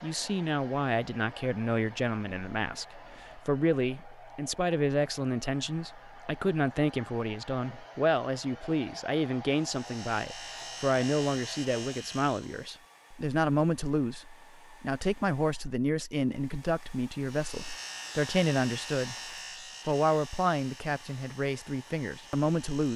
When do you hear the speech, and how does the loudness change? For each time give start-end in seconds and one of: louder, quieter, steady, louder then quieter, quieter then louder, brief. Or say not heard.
0.0-22.9 steady.